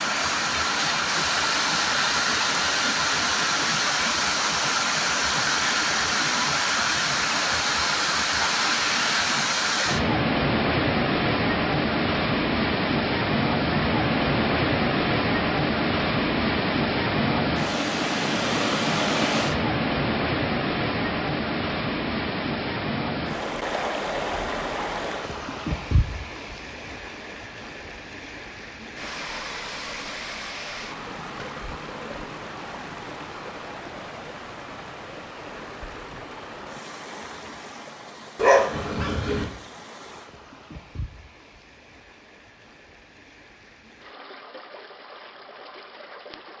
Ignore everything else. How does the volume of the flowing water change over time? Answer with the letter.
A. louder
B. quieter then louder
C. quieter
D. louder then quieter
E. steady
C.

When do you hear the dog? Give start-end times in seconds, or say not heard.
38.4-39.5.